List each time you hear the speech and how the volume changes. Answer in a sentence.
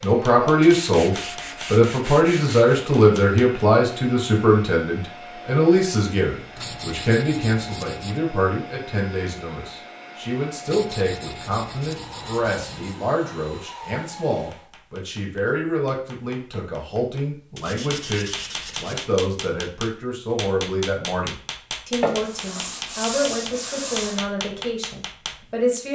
You can hear the speech from 0.0 to 25.9 s, getting quieter.